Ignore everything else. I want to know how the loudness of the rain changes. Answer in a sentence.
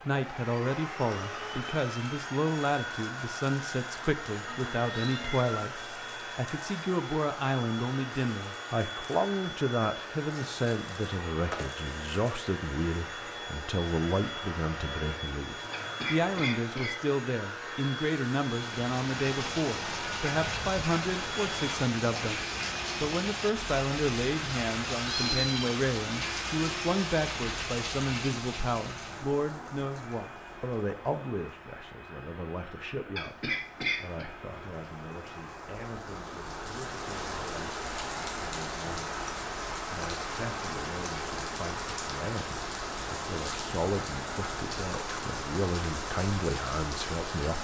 The loudness of the rain goes down, then up.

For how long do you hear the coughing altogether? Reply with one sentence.
The coughing can be heard for 2 seconds in total.